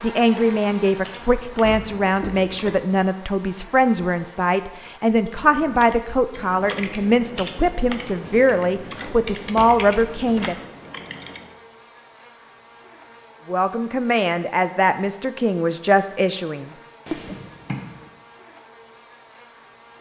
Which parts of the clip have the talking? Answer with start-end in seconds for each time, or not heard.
0.0-10.6, 13.4-17.4.